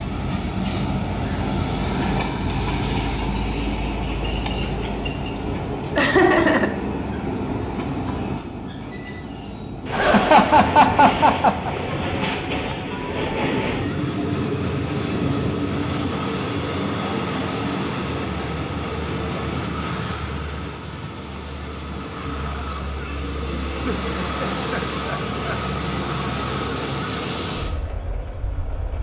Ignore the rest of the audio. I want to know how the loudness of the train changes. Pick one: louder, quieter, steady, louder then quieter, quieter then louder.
steady.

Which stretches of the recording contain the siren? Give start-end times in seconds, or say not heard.
not heard.